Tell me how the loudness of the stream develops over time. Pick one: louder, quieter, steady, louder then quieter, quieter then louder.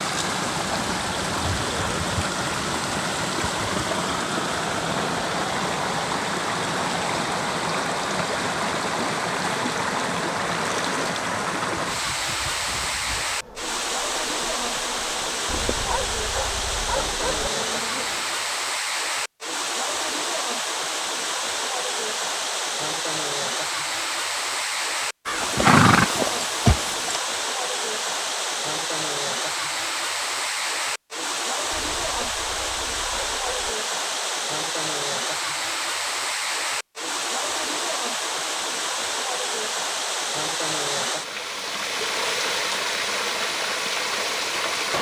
steady.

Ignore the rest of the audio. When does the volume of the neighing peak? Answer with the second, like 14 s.
26 s.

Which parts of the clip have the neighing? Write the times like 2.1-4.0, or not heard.
25.2-27.2.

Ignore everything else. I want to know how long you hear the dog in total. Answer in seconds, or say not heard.
4 s.